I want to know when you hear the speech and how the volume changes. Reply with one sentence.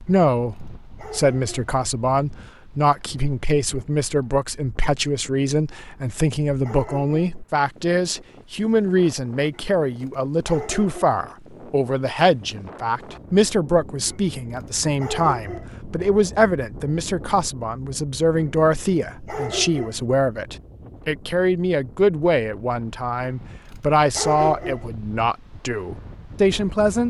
The speech can be heard from 0.0 to 27.0 s, at a steady volume.